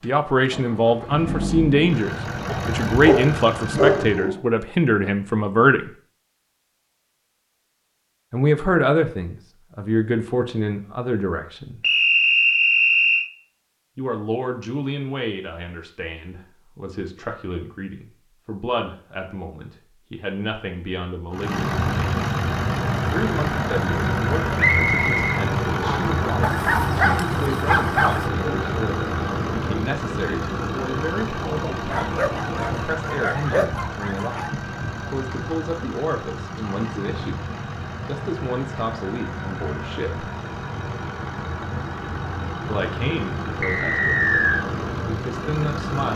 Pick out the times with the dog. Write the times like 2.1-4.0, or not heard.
2.5-4.4, 26.4-28.3, 31.7-34.5.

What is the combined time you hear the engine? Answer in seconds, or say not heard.
29 s.